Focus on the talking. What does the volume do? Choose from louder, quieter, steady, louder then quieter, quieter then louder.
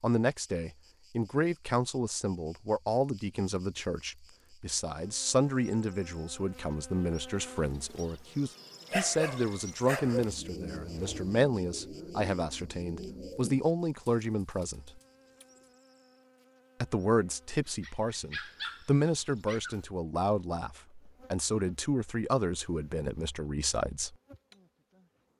steady.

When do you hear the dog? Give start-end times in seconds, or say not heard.
8.9-10.3, 17.6-19.8.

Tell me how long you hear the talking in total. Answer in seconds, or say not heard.
22 s.